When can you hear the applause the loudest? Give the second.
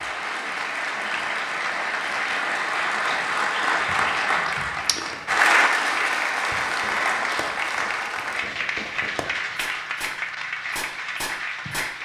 6 s.